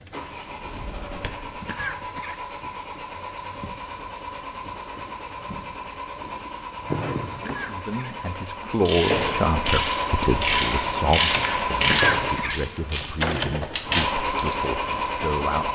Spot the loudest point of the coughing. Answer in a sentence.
The loudest moment of the coughing is at 12 seconds.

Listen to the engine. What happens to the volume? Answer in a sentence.
The volume of the engine goes up.